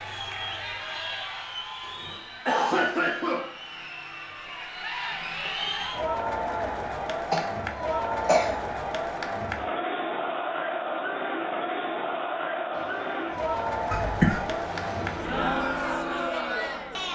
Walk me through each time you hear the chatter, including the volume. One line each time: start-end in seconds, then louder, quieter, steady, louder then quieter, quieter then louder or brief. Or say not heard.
0.0-17.1 louder.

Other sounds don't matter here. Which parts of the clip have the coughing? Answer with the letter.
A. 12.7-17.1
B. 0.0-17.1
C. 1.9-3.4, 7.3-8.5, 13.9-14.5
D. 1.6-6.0
C.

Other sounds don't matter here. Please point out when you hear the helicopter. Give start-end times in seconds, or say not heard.
12.7-17.1.